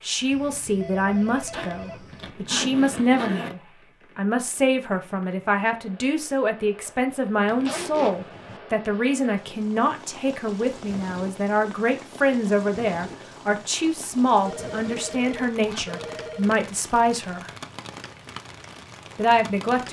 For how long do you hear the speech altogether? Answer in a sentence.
The speech can be heard for 18 seconds in total.